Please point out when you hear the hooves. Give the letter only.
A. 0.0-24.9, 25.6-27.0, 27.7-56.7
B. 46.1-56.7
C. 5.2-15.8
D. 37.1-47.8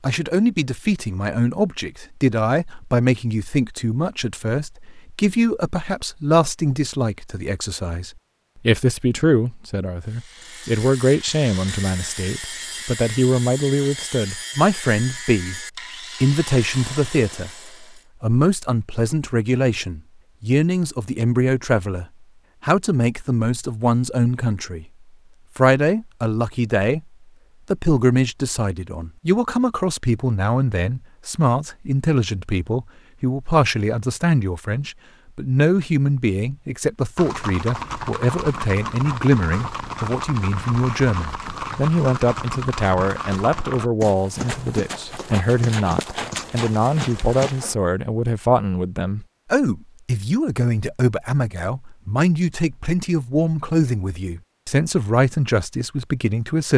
D.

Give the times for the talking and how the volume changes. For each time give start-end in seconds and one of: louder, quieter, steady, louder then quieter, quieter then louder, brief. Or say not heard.
0.0-24.9 steady
25.6-27.0 brief
27.7-56.7 steady.